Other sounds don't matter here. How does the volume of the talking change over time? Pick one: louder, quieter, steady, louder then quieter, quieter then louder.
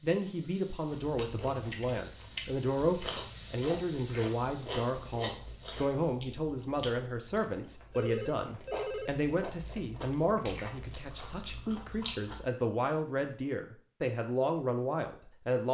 steady.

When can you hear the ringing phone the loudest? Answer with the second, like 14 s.
9 s.